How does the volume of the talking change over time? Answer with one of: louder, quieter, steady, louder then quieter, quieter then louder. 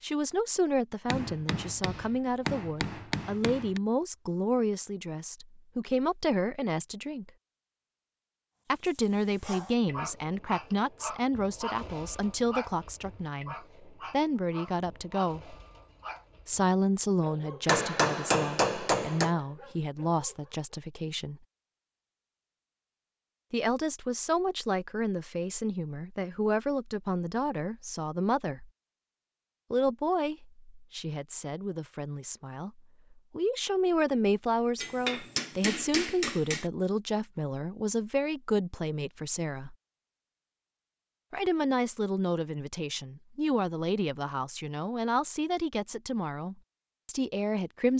steady.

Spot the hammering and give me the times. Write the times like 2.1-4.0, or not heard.
1.1-3.8, 17.6-19.4, 34.8-36.6.